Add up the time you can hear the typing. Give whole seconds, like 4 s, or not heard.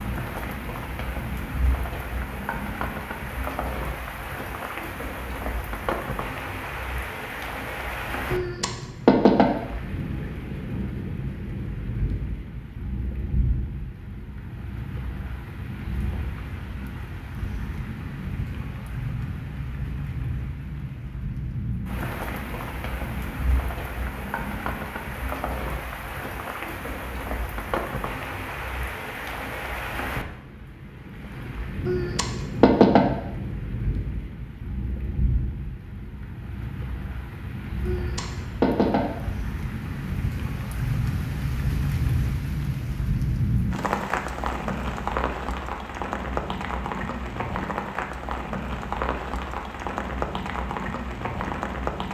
not heard.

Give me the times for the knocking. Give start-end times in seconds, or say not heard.
8.3-9.6, 31.9-33.1, 37.8-39.1.